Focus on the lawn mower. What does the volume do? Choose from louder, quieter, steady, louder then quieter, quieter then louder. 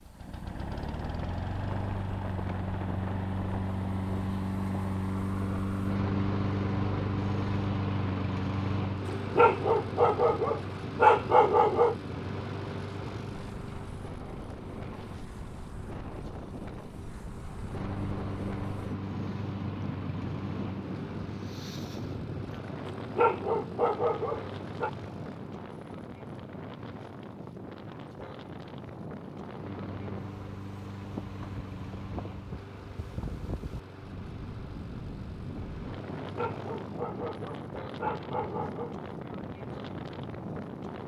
quieter.